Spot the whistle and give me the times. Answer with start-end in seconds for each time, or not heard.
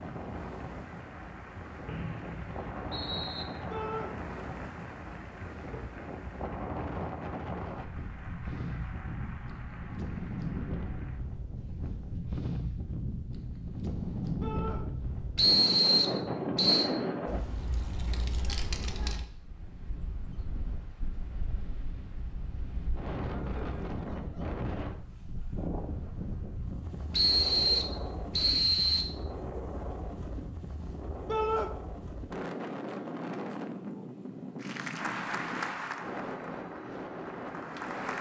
1.9-3.5, 15.3-16.9, 27.1-29.1.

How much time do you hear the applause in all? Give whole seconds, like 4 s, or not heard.
15 s.